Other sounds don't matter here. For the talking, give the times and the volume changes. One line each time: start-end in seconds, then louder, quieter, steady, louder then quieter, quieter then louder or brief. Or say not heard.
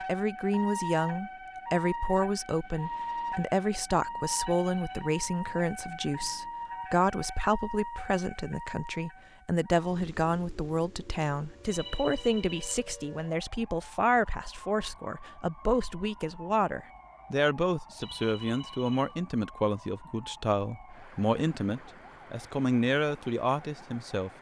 0.1-24.3 steady.